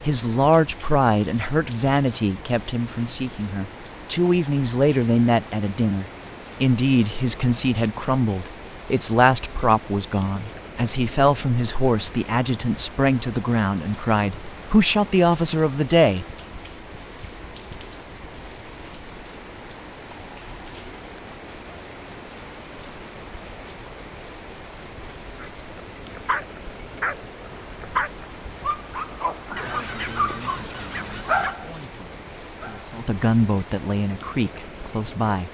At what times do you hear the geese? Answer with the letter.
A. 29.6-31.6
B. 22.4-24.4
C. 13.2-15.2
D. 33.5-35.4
A.